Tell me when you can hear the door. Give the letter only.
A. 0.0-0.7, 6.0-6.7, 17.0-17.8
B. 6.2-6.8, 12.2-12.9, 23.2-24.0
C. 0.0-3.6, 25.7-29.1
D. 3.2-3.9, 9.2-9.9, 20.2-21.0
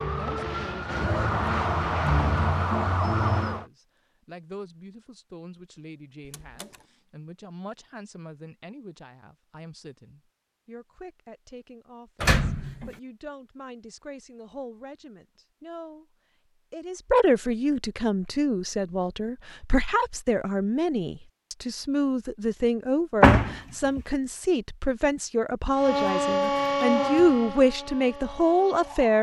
B.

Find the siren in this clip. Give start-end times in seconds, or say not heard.
0.0-3.6, 25.7-29.1.